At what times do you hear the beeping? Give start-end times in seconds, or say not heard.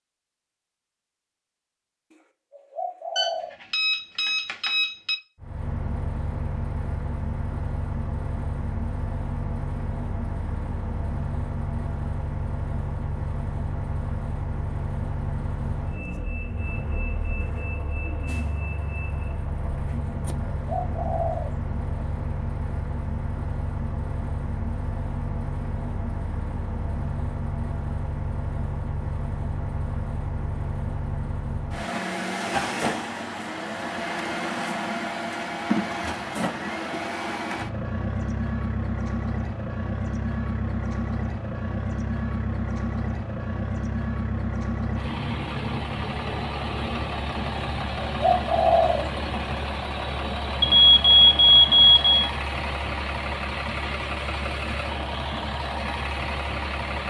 3.1-5.2, 50.6-52.1.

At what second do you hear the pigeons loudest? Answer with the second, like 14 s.
49 s.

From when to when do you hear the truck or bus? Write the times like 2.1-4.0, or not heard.
5.4-57.0.